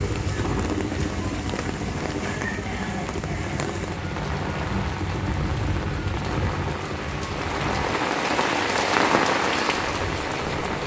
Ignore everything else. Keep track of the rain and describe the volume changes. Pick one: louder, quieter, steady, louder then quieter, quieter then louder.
louder.